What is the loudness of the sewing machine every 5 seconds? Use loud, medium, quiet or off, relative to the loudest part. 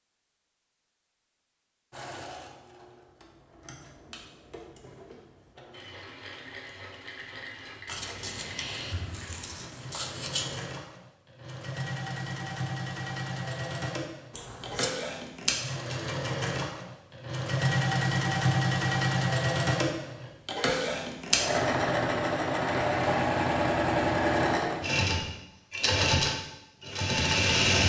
quiet, quiet, medium, loud, loud, loud.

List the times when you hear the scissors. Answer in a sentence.
The scissors can be heard from 7.8 to 10.6 s and from 14.3 to 14.9 s.